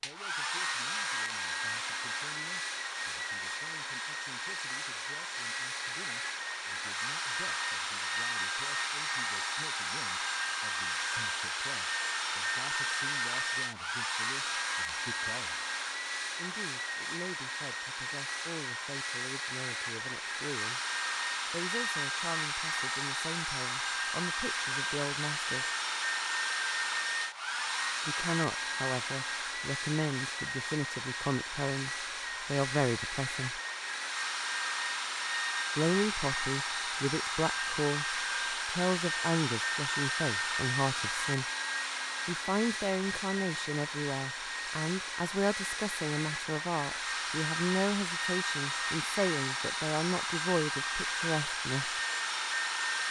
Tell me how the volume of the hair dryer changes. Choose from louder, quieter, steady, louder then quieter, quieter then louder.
steady.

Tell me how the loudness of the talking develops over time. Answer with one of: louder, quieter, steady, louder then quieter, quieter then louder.
louder.